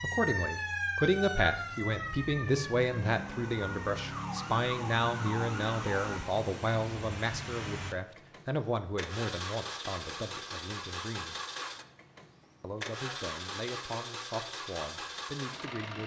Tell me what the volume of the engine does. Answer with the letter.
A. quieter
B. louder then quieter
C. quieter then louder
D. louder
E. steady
E.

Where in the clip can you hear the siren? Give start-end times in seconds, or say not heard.
0.0-6.2.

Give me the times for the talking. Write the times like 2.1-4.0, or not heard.
0.0-11.3, 12.6-16.0.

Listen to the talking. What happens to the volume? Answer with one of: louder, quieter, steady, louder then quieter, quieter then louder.
quieter.